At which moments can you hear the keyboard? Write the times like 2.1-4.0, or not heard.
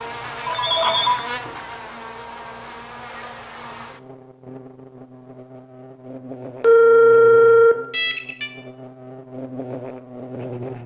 not heard.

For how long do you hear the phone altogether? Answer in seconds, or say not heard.
3 s.